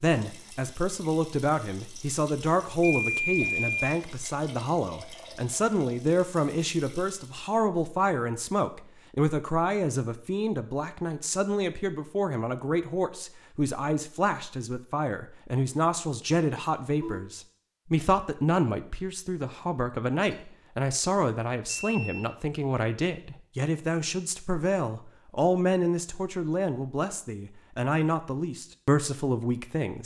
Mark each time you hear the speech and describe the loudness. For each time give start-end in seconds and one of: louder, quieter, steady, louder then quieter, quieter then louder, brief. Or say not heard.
0.0-30.0 steady.